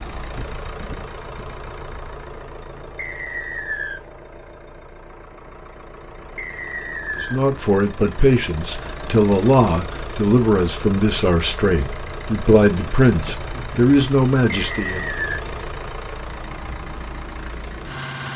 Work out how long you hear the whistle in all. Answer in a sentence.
The whistle can be heard for 3 seconds in total.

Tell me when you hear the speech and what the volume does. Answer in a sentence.
You can hear the speech from 7.2 to 15.1 s, at a steady volume.